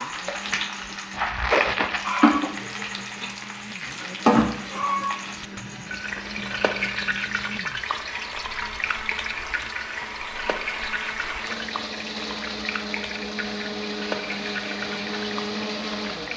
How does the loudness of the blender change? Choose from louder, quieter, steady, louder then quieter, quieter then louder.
louder.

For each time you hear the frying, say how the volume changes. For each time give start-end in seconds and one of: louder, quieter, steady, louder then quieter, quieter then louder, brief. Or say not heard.
0.0-16.3 quieter.